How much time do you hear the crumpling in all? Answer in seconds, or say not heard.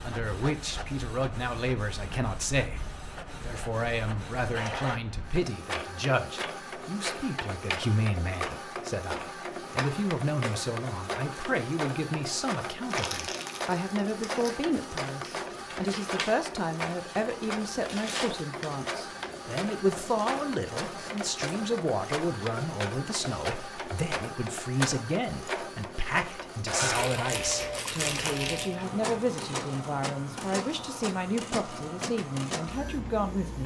4 s.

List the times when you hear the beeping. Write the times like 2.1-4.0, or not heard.
not heard.